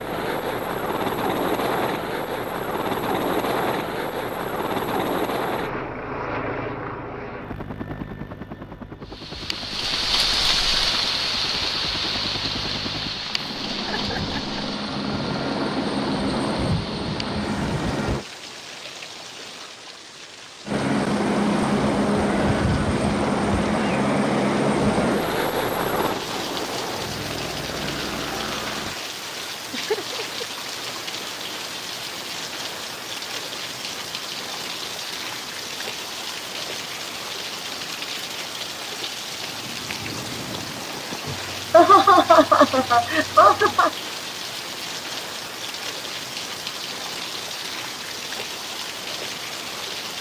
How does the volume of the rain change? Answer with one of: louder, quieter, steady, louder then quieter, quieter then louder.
quieter then louder.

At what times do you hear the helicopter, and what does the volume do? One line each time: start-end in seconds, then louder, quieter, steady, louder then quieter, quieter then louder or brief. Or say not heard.
0.0-18.2 quieter then louder
20.6-28.9 quieter.